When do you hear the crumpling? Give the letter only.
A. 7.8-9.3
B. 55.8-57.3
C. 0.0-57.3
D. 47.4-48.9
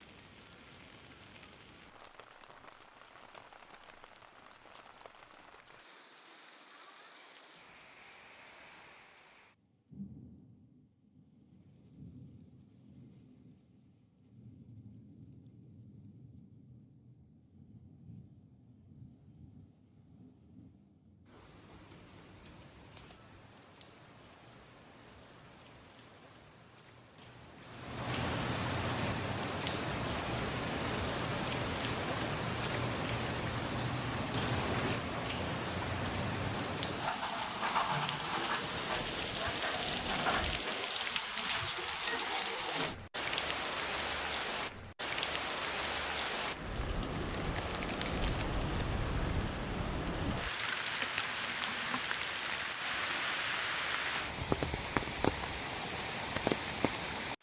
D.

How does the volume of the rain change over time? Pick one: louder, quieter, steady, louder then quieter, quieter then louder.
louder.